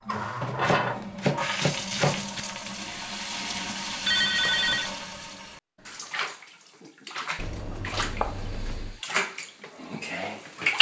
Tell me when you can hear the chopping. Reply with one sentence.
The chopping can be heard from 0.4 to 2.4 s and from 7.3 to 9.0 s.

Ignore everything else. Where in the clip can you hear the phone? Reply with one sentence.
The phone can be heard from 4.0 to 4.9 s.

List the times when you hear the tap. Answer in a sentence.
You can hear the tap from 0.1 to 10.7 s.